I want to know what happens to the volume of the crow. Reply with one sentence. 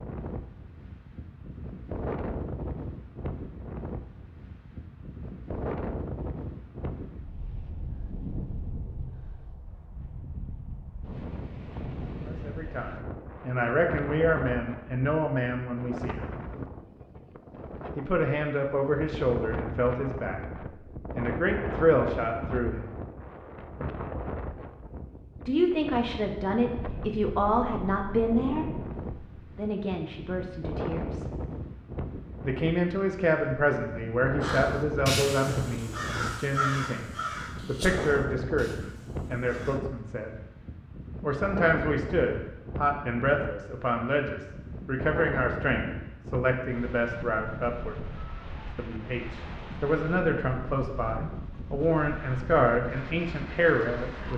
The volume of the crow goes down.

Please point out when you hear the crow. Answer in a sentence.
You can hear the crow from 34.4 to 39.8 s.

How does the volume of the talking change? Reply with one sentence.
The loudness of the talking stays about the same.